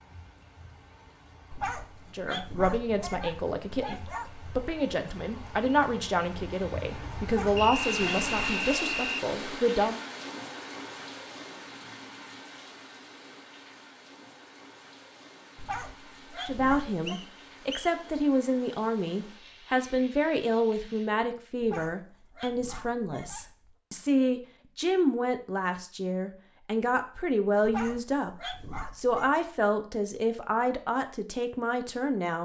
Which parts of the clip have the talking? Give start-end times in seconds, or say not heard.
2.1-10.0, 16.4-32.4.